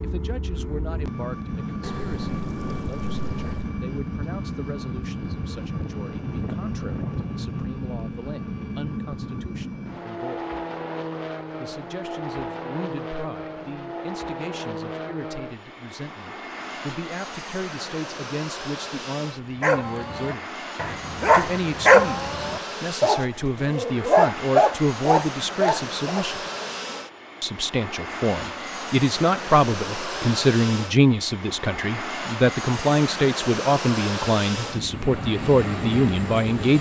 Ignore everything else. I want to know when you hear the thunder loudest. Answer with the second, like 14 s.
7 s.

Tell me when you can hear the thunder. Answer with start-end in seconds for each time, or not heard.
5.7-7.7.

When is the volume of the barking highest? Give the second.
22 s.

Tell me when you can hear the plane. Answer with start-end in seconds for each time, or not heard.
0.0-36.7.